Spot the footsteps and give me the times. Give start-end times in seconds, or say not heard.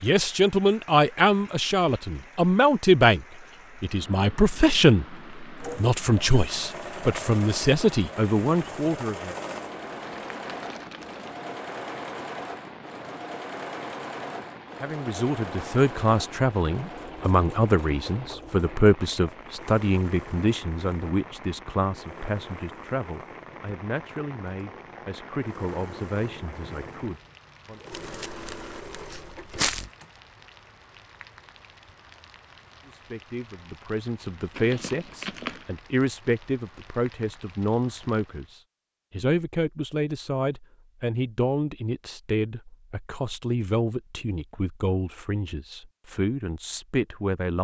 not heard.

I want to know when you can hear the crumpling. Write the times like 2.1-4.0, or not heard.
10.0-11.3, 27.9-29.9, 34.5-35.6.